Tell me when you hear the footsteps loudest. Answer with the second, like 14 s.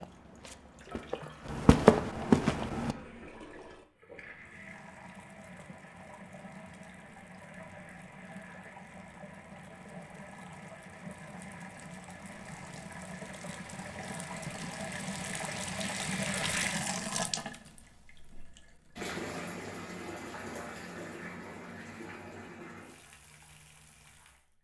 2 s.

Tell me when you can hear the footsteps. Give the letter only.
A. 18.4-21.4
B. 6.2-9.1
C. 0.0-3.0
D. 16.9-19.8
C.